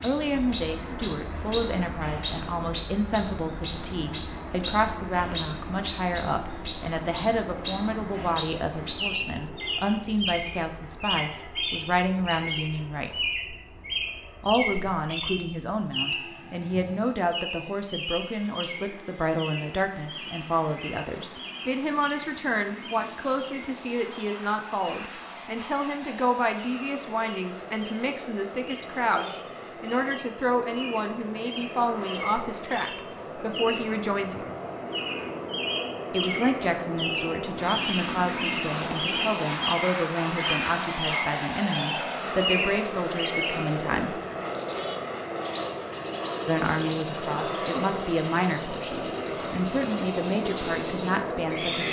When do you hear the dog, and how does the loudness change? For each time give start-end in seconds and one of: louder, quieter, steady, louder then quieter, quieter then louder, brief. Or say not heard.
not heard.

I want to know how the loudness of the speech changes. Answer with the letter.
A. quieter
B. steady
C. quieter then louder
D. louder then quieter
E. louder
B.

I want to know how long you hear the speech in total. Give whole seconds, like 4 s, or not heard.
47 s.